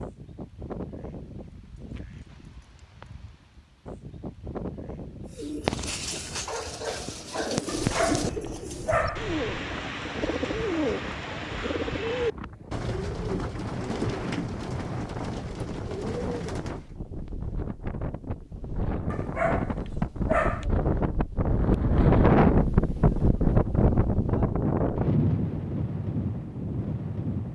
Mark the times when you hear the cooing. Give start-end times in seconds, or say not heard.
5.3-16.9.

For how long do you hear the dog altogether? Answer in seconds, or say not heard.
3 s.